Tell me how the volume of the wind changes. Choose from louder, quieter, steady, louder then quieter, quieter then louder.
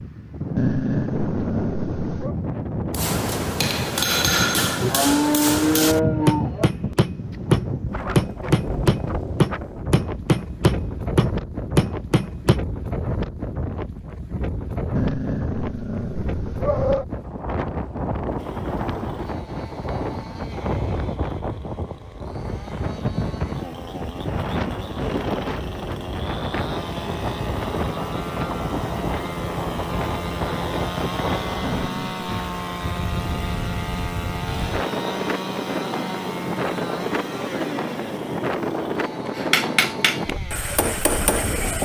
steady.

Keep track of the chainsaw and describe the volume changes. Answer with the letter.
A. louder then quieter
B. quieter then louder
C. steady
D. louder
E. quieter
D.